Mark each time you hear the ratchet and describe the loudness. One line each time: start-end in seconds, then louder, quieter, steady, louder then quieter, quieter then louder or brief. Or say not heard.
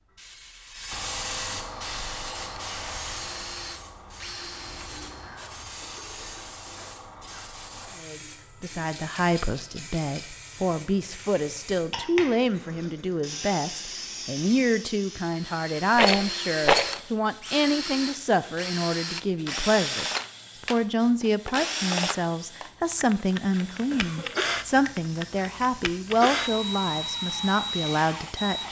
not heard.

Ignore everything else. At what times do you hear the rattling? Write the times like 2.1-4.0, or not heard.
8.9-10.3, 15.9-16.9.